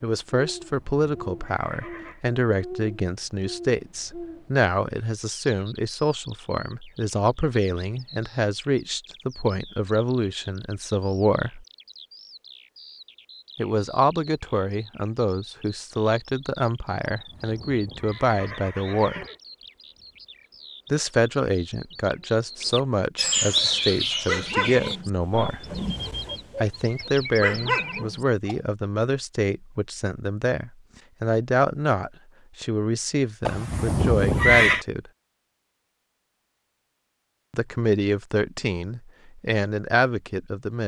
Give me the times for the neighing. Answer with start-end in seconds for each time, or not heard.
0.5-2.2, 17.3-19.4, 33.5-34.9.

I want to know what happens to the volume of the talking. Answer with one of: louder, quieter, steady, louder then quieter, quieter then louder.
steady.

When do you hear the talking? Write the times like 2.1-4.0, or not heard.
0.0-11.7, 13.6-19.2, 20.9-25.6, 26.6-35.0, 37.5-40.8.